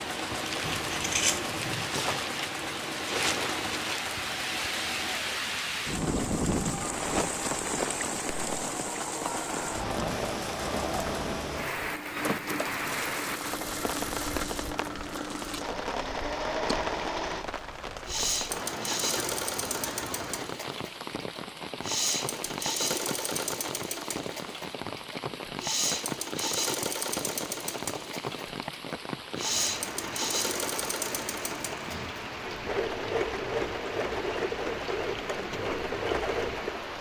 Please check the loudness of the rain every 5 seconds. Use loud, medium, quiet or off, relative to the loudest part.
loud, loud, loud, medium, medium, medium, medium, medium.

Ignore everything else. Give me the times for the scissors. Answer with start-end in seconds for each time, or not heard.
0.6-1.9.